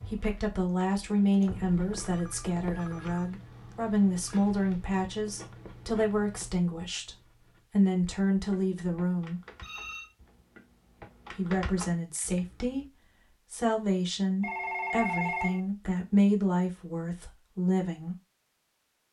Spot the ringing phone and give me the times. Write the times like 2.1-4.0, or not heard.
1.9-4.5, 9.6-10.2, 14.4-15.6.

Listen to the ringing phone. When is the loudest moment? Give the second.
15 s.